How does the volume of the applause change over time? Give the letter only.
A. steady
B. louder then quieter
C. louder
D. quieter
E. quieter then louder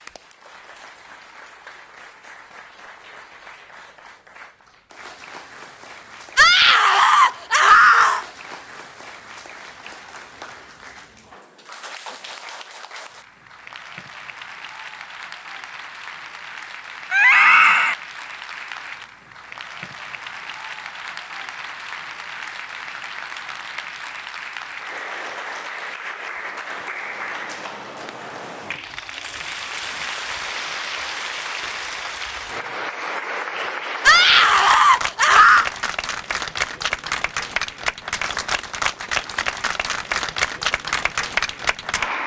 C.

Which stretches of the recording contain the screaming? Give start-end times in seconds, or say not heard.
6.3-8.2, 17.1-17.9, 34.0-35.7.